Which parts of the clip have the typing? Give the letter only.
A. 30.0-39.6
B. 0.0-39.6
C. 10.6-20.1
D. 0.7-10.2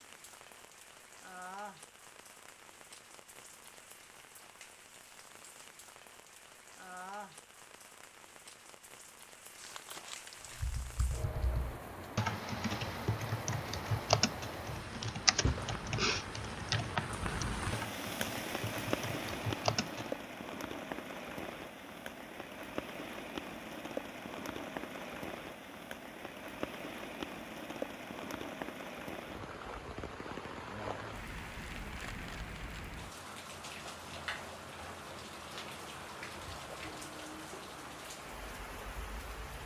C.